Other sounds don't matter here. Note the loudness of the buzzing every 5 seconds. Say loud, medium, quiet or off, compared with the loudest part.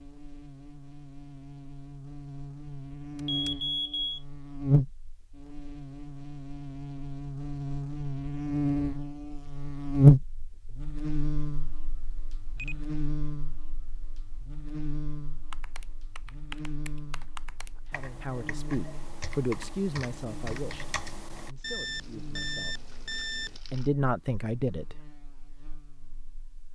medium, medium, loud, quiet, quiet, quiet.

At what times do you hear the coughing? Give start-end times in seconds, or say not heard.
not heard.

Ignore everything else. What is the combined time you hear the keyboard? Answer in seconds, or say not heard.
6 s.